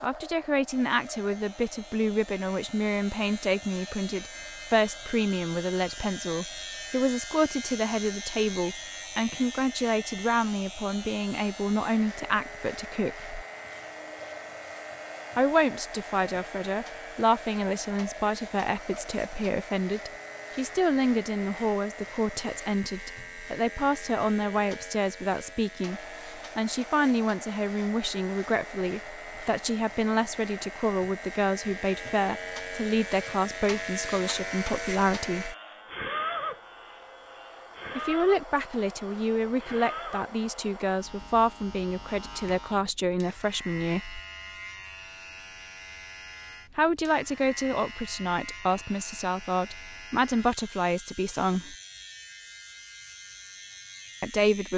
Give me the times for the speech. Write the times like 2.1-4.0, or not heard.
0.0-13.4, 15.3-35.5, 38.0-44.2, 46.8-51.8, 54.2-54.7.